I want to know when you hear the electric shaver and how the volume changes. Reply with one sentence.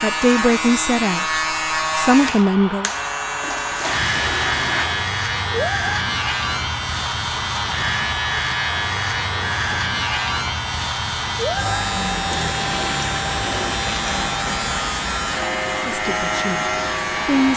The electric shaver can be heard from 0.0 to 17.5 s, at a steady volume.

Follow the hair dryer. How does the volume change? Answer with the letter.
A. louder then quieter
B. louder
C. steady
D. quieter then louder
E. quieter
C.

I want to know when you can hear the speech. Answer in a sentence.
You can hear the speech from 0.0 to 2.9 s and from 15.8 to 17.5 s.